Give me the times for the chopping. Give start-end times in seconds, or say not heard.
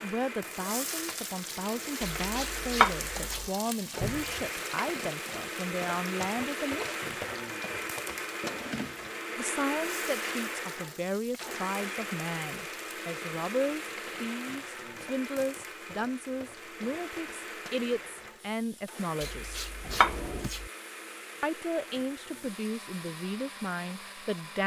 2.0-3.5, 19.2-20.7.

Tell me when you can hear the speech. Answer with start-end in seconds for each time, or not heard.
0.0-7.2, 9.3-19.6, 21.4-24.6.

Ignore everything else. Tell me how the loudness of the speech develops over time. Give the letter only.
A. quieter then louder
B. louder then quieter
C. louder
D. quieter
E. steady
E.